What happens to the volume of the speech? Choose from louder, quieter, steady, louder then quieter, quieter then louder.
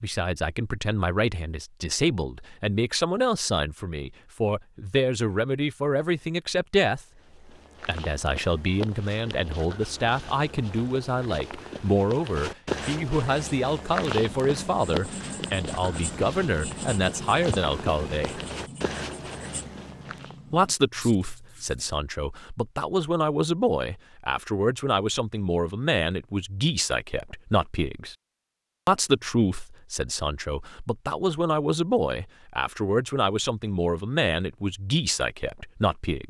steady.